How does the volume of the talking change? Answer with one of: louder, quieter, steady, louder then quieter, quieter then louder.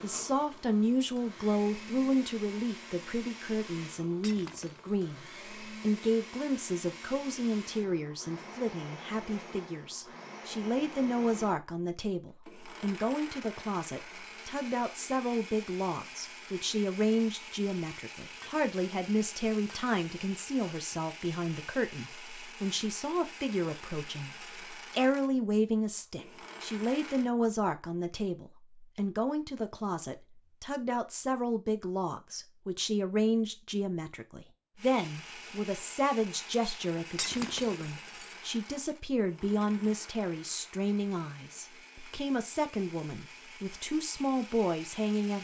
steady.